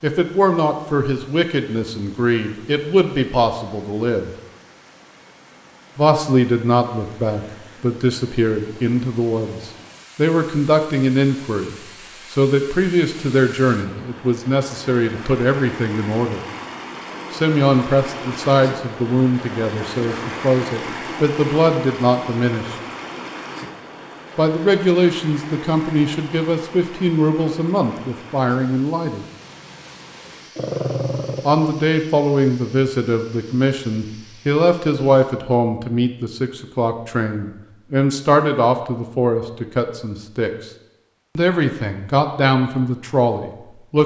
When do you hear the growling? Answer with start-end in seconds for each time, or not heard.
30.6-31.4.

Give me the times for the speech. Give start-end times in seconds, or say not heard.
0.0-4.3, 6.0-16.4, 17.3-22.8, 24.4-29.2, 31.4-40.7, 41.4-44.0.